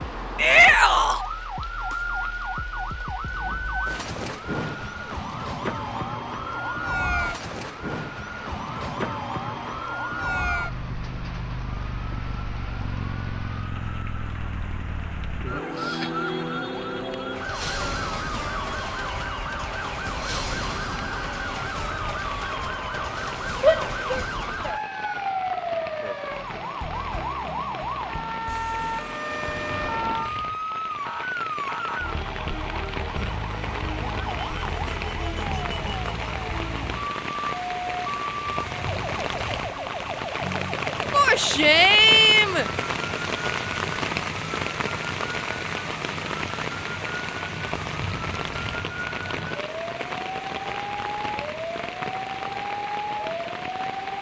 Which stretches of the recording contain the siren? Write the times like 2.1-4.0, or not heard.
0.0-54.1.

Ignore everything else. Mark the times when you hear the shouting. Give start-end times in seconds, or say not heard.
0.3-1.2, 23.6-24.8, 41.1-42.6.